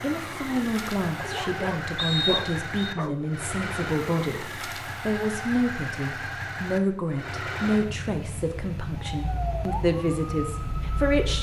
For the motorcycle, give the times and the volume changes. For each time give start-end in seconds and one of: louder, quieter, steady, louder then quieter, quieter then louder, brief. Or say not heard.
0.0-11.3 steady.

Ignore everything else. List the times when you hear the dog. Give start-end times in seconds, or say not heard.
1.1-3.3.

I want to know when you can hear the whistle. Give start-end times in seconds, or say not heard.
1.9-2.9.